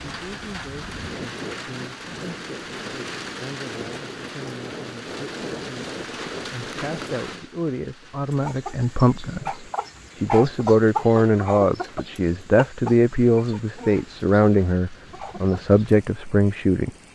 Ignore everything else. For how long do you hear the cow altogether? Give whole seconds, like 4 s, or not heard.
not heard.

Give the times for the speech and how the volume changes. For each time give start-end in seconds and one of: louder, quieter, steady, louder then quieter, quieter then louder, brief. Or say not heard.
0.0-16.9 louder.